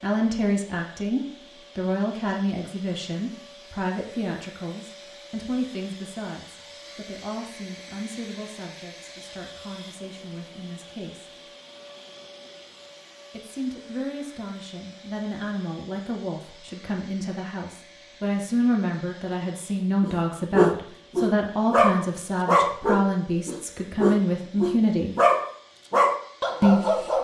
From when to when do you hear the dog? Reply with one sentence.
You can hear the dog from 20.0 to 27.1 s.